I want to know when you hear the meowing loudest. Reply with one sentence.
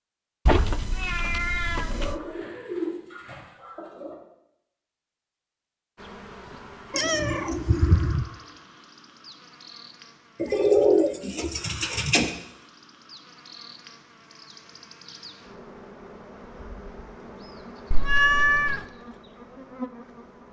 The volume of the meowing peaks at 18 seconds.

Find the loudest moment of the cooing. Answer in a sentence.
The loudest moment of the cooing is at 11 seconds.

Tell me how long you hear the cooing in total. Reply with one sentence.
You can hear the cooing for 4 seconds altogether.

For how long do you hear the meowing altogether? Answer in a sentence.
The meowing can be heard for 4 seconds in total.